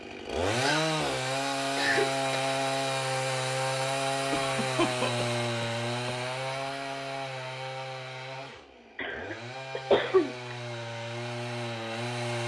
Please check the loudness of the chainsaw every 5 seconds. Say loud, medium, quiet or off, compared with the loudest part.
loud, medium, medium.